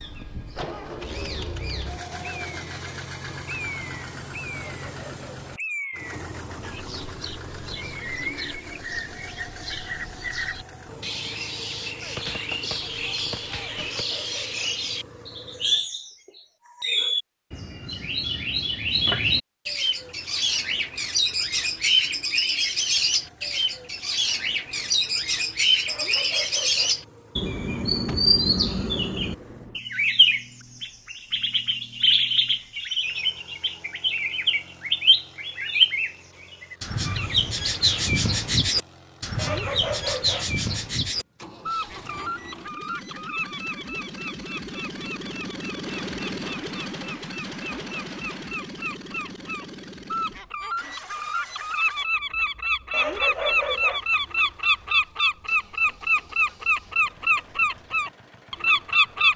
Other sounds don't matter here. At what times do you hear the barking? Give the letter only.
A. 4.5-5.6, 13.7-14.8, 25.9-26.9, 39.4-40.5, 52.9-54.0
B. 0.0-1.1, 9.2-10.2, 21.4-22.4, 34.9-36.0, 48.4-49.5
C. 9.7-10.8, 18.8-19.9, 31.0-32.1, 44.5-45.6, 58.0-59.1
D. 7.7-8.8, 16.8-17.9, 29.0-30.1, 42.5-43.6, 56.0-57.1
A.